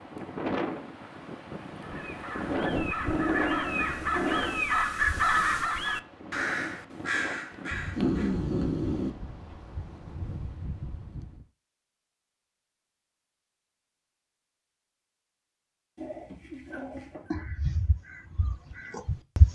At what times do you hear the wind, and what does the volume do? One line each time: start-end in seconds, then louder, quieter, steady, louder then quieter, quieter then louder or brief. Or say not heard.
0.0-11.4 quieter.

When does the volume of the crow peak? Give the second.
5 s.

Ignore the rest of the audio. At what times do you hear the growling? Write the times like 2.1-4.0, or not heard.
3.0-4.5, 8.0-9.1, 15.9-17.4.